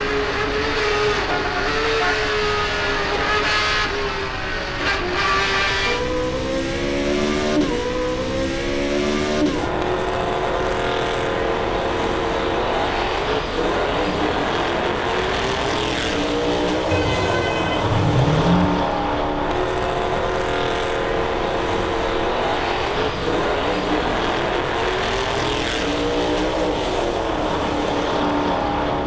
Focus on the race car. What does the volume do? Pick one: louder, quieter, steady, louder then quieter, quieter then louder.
steady.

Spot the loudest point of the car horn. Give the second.
18 s.